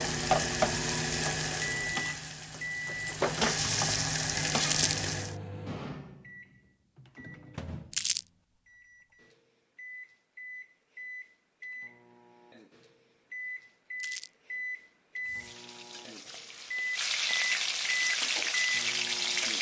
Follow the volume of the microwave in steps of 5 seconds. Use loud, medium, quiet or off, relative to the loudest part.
loud, medium, medium, loud.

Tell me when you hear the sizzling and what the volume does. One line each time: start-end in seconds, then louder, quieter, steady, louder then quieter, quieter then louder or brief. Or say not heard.
0.0-5.3 quieter then louder
15.2-19.5 louder.